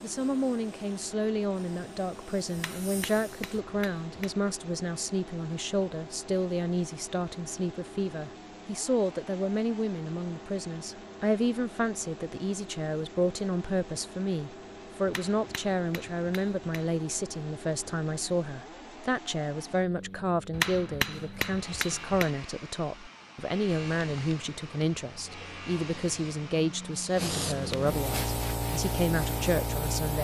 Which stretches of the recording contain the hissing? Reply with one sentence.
The hissing can be heard from 0.2 to 3.6 s and from 23.6 to 30.1 s.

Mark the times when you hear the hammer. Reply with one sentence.
You can hear the hammer from 2.5 to 4.3 s, from 15.1 to 16.9 s and from 20.5 to 22.3 s.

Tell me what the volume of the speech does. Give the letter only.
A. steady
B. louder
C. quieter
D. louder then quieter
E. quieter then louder
A.